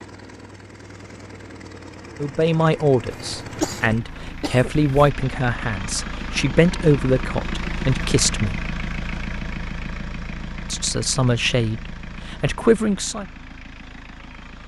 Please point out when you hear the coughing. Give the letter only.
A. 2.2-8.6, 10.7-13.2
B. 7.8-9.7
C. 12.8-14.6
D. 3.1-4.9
D.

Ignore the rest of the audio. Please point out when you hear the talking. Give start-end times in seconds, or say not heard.
2.2-8.6, 10.7-13.2.